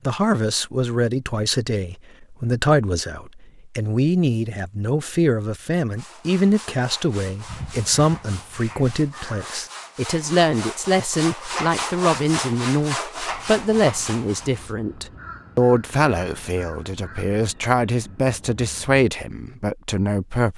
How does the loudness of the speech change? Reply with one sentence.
The volume of the speech stays about the same.